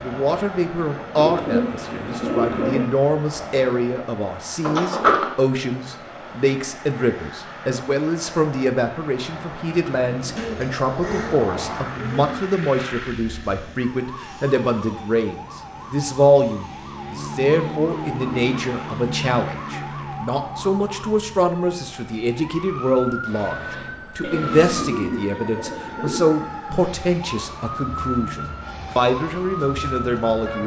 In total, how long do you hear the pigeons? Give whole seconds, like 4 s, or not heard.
6 s.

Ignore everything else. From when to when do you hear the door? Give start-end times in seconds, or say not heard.
4.6-5.3, 23.2-25.1.